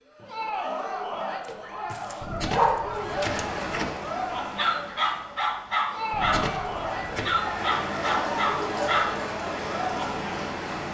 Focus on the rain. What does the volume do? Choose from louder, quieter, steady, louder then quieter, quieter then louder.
quieter then louder.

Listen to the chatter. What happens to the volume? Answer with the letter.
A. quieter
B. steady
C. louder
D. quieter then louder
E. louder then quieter
B.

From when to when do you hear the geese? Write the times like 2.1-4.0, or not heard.
2.2-3.9, 6.1-7.5.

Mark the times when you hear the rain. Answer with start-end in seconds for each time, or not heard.
2.9-10.8.